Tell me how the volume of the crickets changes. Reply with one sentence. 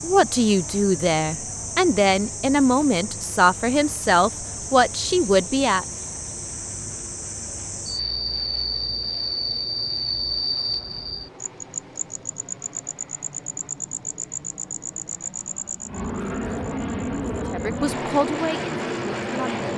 The loudness of the crickets goes up, then down.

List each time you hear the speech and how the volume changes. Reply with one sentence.
You can hear the speech from 0.0 to 5.8 s, at a steady volume; and briefly from 17.3 to 19.7 s.